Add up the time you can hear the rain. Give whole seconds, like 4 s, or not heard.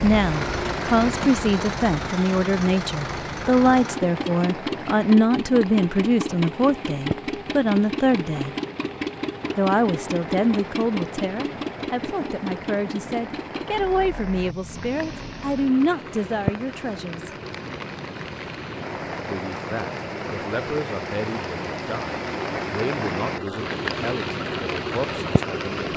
26 s.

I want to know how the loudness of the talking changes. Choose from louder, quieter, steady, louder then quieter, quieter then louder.
quieter.